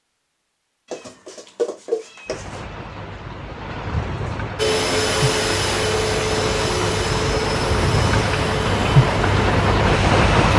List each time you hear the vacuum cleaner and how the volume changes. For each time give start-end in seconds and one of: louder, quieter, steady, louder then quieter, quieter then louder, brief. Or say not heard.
4.5-10.5 quieter.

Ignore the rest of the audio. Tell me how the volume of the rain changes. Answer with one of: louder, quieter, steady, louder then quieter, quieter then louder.
louder.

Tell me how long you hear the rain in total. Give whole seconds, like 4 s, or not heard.
8 s.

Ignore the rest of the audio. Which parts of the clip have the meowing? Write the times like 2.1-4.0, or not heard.
0.9-2.6.